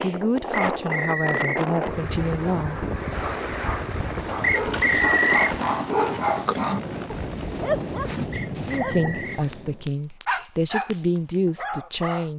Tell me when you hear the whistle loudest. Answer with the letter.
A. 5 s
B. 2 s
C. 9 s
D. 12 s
A.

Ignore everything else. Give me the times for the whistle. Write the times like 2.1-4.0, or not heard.
0.7-1.6, 4.4-5.5, 8.3-9.4.